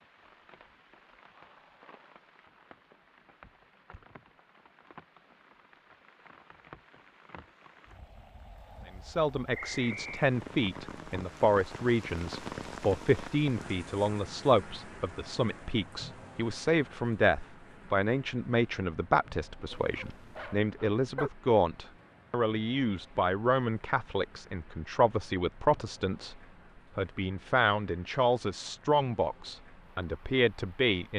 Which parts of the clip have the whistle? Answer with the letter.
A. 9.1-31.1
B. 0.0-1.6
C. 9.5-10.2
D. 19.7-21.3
C.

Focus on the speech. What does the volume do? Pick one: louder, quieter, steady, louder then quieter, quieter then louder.
steady.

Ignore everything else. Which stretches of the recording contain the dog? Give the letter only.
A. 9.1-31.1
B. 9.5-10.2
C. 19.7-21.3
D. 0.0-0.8
C.